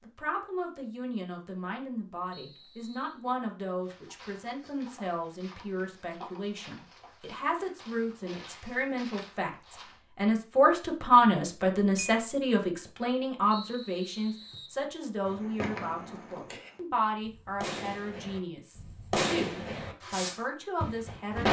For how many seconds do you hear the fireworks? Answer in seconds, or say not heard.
6 s.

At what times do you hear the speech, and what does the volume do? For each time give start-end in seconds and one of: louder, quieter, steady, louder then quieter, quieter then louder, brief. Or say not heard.
0.0-21.4 louder then quieter.